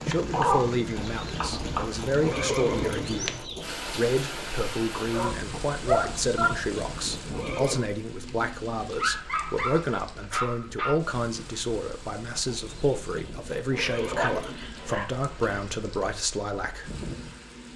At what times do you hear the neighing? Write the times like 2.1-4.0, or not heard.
0.9-3.6, 6.0-7.8, 12.4-14.7.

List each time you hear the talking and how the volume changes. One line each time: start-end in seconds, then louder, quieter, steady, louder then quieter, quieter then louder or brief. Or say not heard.
0.1-16.9 steady.